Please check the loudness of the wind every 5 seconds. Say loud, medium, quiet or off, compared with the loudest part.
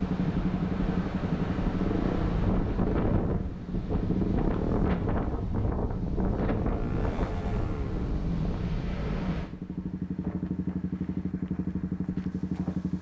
loud, loud, quiet.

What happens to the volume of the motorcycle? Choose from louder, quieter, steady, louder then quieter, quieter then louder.
quieter then louder.